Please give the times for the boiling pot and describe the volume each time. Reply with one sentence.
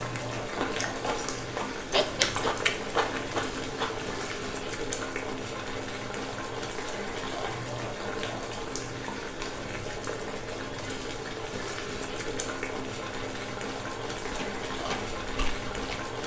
The boiling pot can be heard from 0.0 to 16.2 s, at a steady volume.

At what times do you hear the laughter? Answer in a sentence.
You can hear the laughter from 1.9 to 2.8 s.